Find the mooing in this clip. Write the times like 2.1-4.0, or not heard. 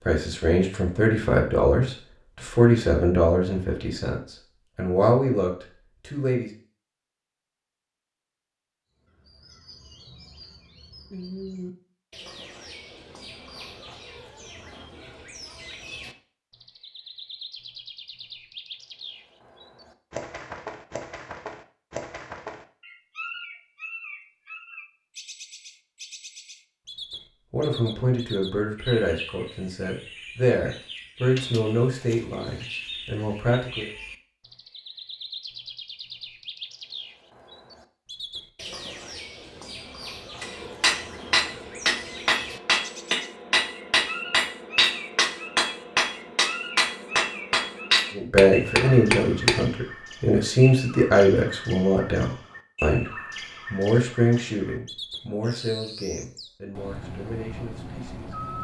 not heard.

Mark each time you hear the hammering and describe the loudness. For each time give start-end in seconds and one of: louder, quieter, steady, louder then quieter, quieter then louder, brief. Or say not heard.
40.4-49.6 steady.